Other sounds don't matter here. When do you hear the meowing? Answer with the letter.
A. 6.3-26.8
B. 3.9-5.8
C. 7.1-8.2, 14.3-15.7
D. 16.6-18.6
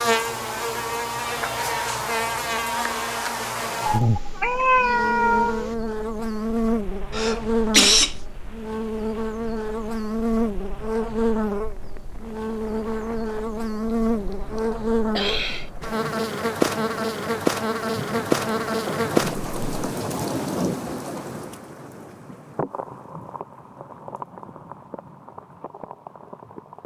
B.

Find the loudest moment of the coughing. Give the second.
8 s.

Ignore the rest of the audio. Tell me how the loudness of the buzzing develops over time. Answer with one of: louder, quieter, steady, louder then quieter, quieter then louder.
steady.